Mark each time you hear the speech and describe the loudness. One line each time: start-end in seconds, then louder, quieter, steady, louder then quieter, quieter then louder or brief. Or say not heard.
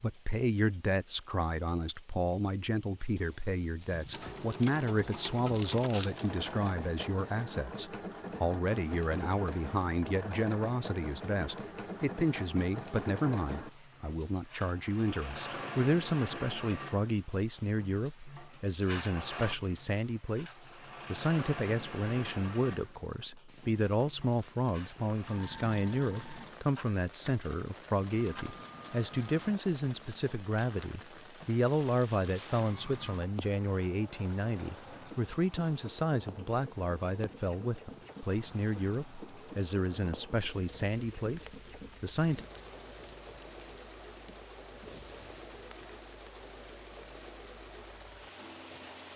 0.0-20.5 steady
21.1-42.5 steady.